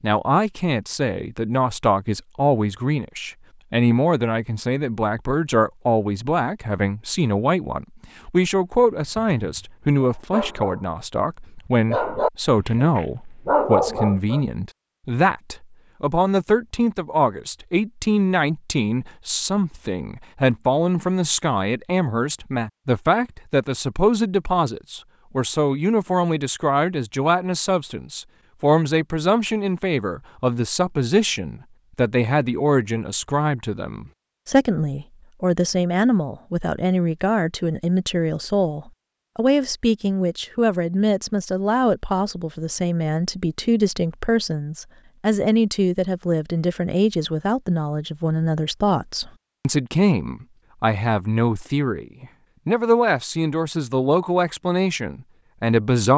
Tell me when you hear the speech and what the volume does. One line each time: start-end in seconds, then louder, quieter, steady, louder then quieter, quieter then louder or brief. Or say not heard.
0.0-56.1 steady.